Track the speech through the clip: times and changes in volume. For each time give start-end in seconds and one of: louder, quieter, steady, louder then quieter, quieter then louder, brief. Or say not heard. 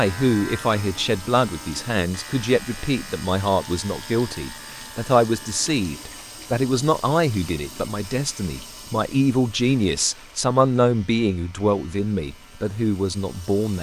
0.0-13.7 steady.